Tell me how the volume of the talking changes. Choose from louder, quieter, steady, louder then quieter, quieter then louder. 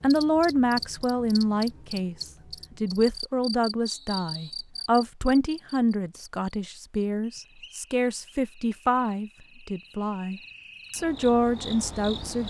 steady.